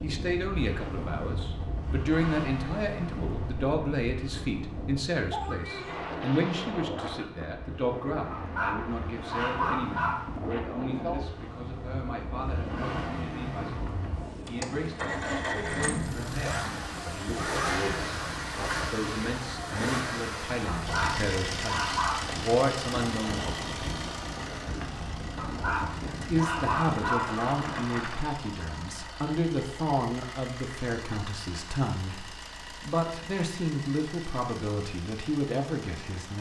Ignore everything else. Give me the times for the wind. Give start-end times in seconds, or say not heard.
0.0-28.2.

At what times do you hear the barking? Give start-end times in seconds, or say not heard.
8.3-10.3, 20.8-22.2, 25.4-27.4.